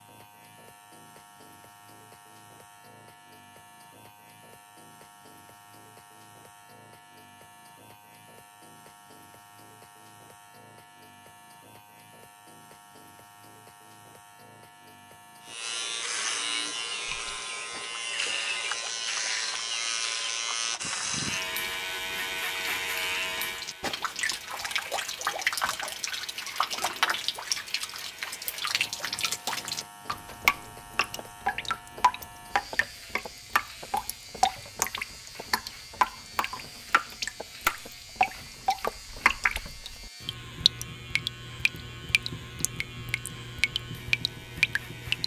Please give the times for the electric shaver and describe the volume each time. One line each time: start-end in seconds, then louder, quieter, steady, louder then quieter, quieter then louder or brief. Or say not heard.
0.0-45.2 louder then quieter.